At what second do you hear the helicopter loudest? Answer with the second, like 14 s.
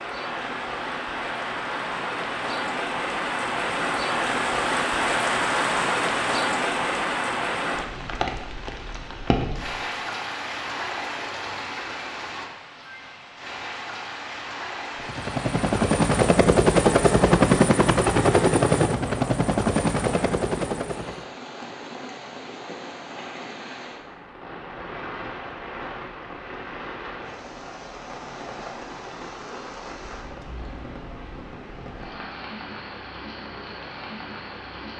17 s.